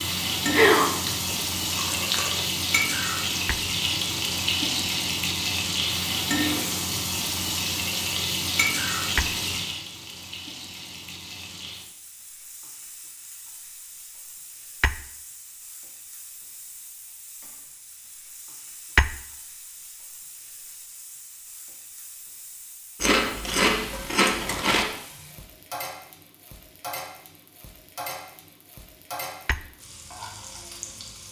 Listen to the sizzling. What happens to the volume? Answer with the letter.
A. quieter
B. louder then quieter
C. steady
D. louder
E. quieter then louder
E.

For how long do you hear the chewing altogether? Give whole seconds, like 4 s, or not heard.
4 s.